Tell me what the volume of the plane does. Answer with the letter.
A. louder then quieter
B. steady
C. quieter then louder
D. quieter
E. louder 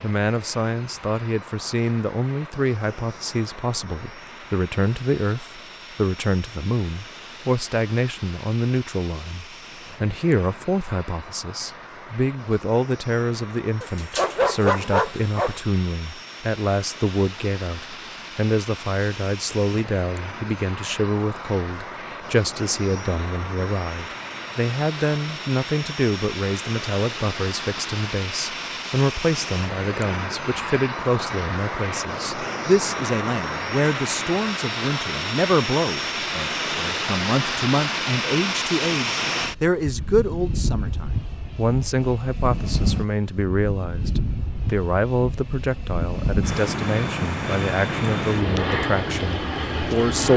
E.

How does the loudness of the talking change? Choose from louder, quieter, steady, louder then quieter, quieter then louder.
steady.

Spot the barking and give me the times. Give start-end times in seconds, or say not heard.
13.8-15.6.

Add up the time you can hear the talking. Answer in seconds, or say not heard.
50 s.